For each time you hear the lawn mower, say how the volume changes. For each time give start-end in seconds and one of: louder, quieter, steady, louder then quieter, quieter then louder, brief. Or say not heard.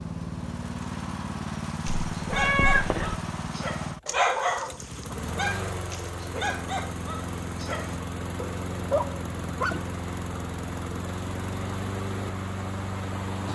0.0-13.5 steady.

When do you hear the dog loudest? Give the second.
4 s.